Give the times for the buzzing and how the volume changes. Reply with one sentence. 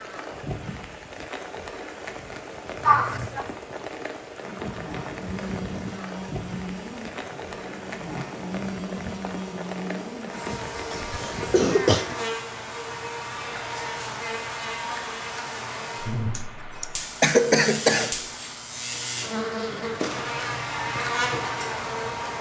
The buzzing can be heard from 4.3 to 22.3 s, getting louder.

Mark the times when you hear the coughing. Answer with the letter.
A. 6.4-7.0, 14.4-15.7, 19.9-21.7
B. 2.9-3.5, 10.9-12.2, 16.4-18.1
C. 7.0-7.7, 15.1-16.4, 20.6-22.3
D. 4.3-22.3
B.